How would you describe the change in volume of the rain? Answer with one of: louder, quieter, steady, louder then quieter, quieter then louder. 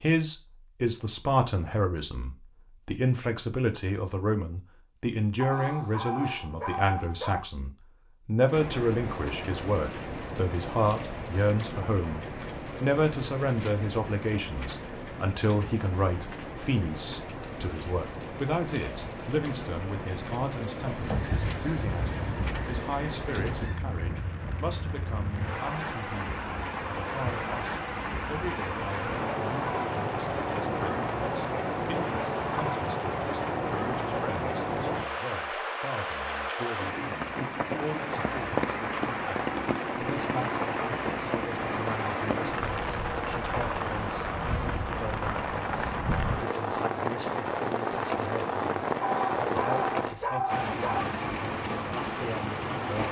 louder.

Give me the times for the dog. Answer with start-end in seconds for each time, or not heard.
5.4-7.4, 49.0-51.0.